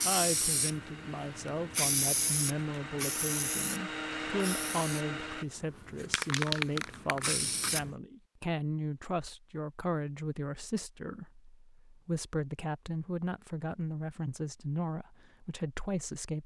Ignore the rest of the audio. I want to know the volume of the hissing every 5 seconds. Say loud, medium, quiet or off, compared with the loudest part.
loud, loud, off, off.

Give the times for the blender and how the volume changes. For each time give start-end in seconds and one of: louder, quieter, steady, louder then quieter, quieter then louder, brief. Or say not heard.
0.0-5.5 louder.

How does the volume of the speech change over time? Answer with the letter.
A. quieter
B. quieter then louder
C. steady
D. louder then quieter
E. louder
C.